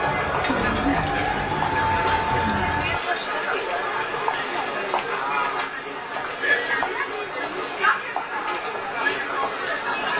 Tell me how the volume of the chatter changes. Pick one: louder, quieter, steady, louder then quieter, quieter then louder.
steady.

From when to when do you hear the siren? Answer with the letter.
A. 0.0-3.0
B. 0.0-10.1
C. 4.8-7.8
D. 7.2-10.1
A.